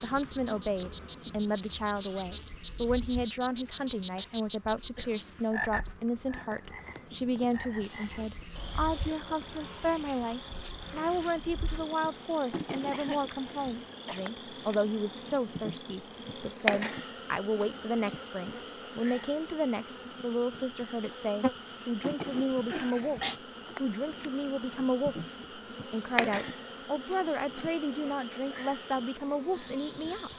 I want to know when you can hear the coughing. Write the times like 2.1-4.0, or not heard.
4.2-5.1, 12.9-14.2, 22.6-23.4.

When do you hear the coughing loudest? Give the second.
23 s.